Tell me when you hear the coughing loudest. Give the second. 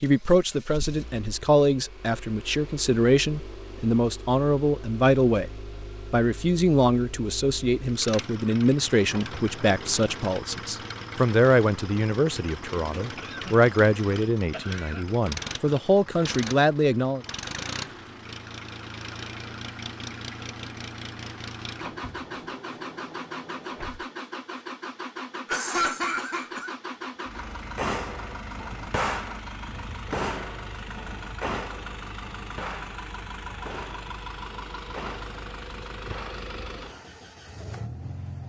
26 s.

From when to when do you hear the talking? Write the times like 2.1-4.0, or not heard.
0.0-5.5, 6.1-17.2.